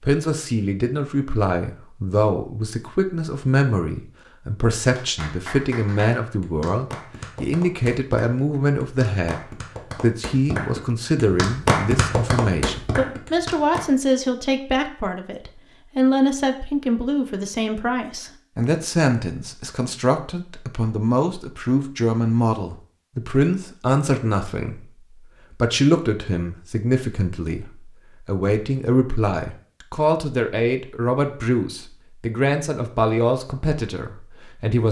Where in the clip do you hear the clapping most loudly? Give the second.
12 s.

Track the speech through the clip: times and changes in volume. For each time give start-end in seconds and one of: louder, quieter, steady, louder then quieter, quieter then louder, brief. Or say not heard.
0.0-34.8 steady.